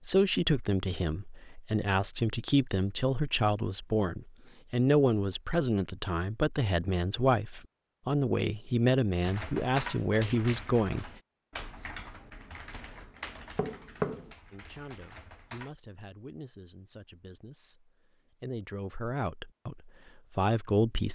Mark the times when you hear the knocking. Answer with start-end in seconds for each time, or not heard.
13.6-14.3.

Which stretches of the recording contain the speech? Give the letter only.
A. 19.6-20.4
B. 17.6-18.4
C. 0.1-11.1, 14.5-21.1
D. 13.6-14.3
C.